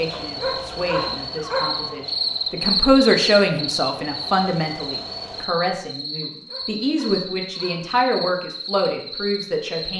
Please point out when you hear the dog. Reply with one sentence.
You can hear the dog from 0.1 to 2.0 s and from 6.2 to 8.0 s.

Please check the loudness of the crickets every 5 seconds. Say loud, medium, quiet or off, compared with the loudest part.
loud, medium.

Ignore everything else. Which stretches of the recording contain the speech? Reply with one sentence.
You can hear the speech from 0.0 to 9.9 s.